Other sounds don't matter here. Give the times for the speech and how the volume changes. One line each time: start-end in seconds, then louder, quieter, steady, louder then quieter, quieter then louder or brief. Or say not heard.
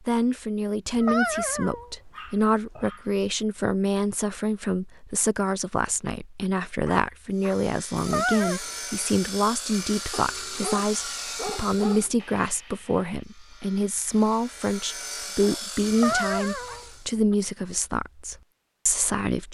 0.1-19.4 steady.